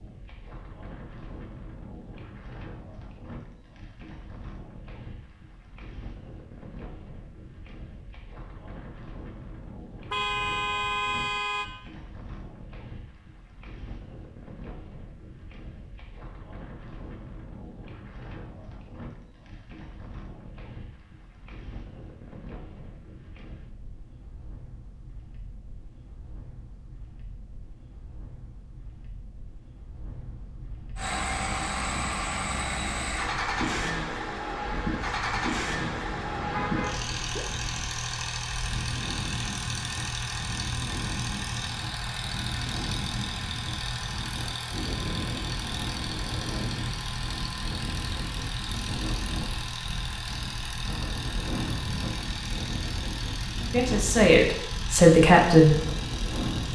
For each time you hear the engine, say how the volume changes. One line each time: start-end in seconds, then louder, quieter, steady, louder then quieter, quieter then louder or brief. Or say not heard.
30.9-56.7 quieter.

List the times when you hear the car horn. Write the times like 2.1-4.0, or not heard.
10.1-11.7, 36.5-37.5.